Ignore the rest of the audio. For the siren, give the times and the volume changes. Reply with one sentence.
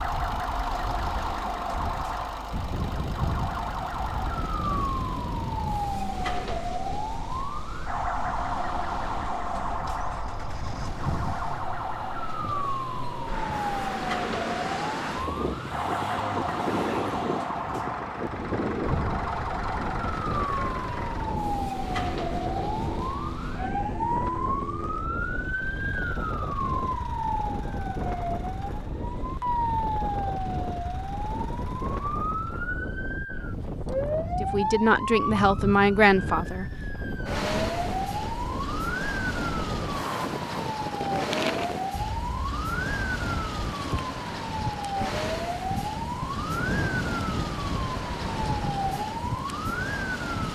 You can hear the siren from 0.0 to 50.5 s, at a steady volume.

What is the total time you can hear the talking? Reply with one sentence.
The talking can be heard for 2 seconds in total.